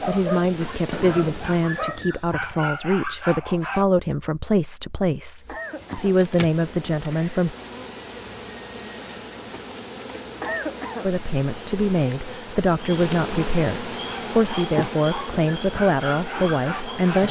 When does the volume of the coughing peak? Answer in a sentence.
The loudest moment of the coughing is at 11 seconds.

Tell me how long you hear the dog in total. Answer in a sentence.
You can hear the dog for 7 seconds altogether.